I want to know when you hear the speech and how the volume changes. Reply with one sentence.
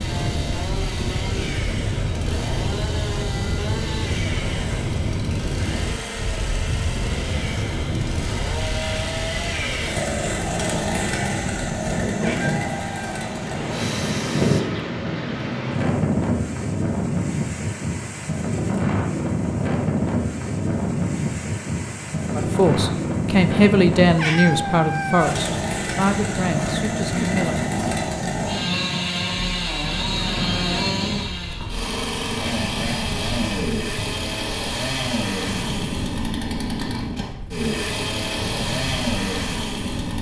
The speech can be heard from 22.4 to 27.6 s, getting quieter.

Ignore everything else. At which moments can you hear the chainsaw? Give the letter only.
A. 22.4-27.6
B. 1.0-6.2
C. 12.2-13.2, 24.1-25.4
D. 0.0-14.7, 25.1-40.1
D.